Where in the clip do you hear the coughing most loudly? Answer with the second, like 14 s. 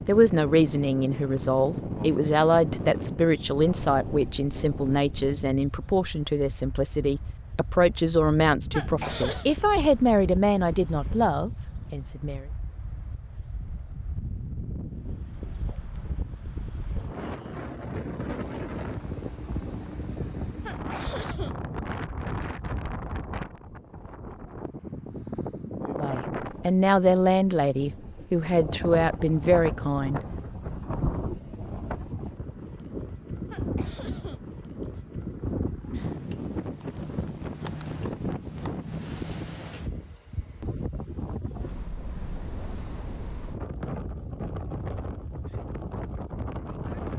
9 s.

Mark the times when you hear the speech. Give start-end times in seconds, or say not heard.
0.1-12.4, 25.9-30.2.